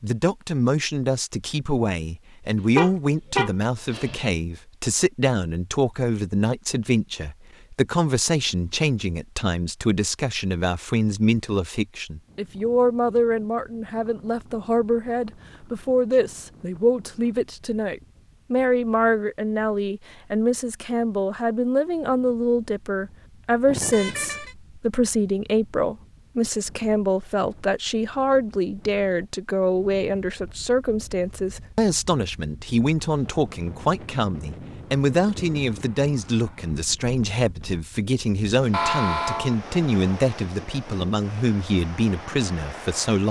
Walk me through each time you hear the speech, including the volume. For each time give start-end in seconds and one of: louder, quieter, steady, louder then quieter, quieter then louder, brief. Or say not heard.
0.0-43.2 steady.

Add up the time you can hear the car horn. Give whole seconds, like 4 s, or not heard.
3 s.